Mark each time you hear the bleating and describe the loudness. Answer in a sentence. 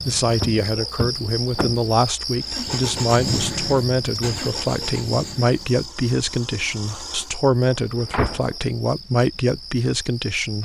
The bleating can't be heard in this clip.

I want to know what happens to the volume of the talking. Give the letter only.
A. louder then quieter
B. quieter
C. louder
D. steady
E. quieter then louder
D.